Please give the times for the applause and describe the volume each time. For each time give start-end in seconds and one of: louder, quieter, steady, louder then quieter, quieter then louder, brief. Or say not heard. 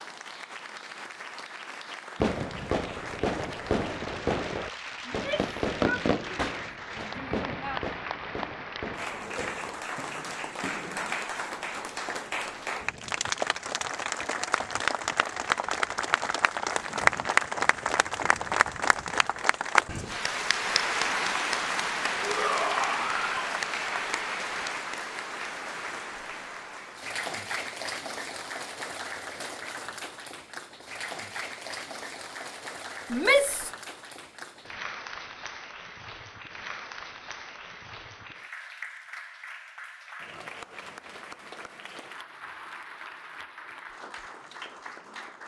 0.0-45.4 louder then quieter.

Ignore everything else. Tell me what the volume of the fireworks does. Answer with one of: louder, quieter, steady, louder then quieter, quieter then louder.
quieter.